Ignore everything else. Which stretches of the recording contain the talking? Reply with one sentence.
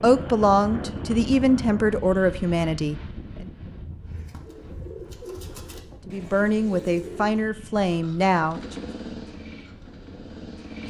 The talking can be heard from 0.0 to 3.5 s and from 6.0 to 8.8 s.